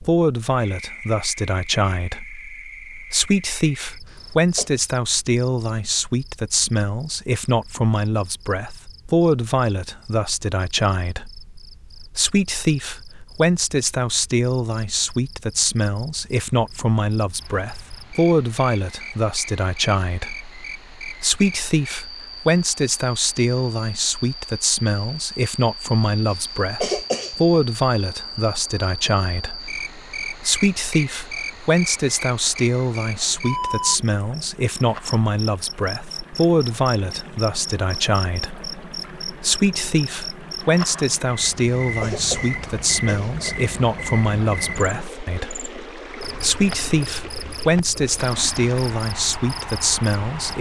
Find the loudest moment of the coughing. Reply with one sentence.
The loudest moment of the coughing is at 27 seconds.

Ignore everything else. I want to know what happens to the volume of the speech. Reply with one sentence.
The loudness of the speech stays about the same.